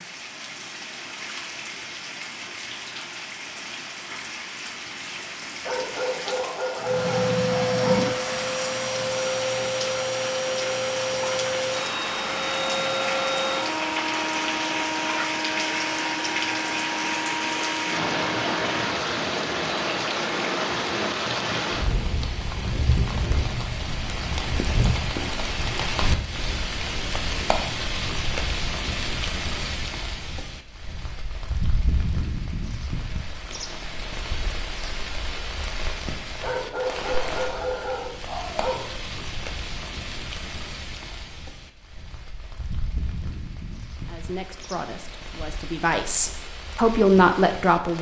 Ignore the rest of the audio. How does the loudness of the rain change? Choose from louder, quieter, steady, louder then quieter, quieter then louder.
louder then quieter.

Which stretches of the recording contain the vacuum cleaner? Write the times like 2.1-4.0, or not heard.
6.8-18.9.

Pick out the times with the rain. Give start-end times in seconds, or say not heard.
0.0-47.9.